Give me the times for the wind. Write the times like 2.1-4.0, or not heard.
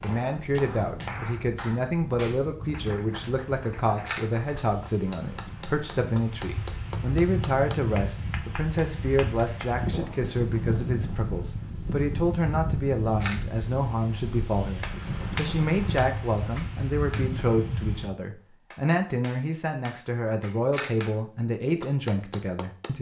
0.0-18.1.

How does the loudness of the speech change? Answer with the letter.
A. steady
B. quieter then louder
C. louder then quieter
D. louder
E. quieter
A.